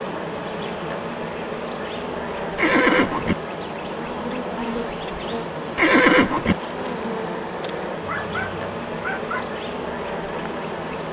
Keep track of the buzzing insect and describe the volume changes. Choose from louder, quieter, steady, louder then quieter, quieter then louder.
steady.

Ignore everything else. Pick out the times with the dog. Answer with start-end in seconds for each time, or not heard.
8.0-9.6.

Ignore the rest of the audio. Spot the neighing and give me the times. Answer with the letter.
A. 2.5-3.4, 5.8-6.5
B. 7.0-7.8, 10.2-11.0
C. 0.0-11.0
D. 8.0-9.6
A.